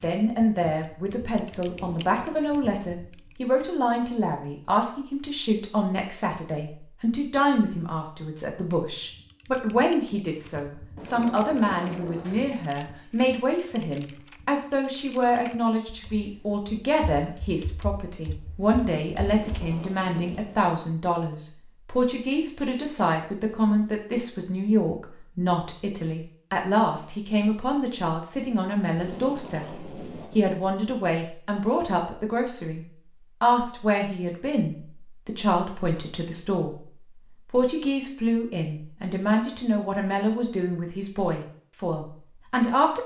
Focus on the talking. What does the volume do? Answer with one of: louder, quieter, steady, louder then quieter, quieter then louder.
steady.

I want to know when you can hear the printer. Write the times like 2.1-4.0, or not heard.
not heard.